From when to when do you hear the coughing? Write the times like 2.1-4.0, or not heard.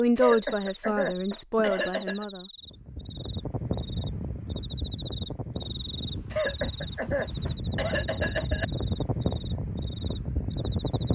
0.1-2.2, 6.3-8.7.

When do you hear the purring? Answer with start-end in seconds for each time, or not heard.
not heard.